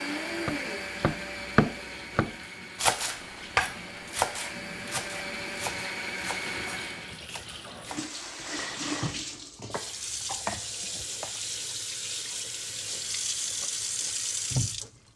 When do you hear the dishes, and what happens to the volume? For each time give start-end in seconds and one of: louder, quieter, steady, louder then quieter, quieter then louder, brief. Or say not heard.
not heard.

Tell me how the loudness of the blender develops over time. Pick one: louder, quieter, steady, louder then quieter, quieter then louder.
quieter then louder.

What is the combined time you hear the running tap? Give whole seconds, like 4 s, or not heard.
15 s.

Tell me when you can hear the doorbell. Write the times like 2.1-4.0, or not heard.
not heard.